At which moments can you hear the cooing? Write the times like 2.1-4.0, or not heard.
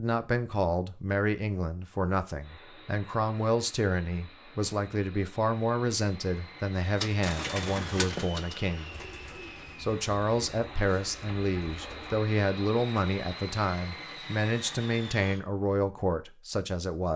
7.0-12.2.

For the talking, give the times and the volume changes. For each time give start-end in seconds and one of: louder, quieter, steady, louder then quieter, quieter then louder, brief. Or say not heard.
0.0-8.9 steady
9.8-17.1 steady.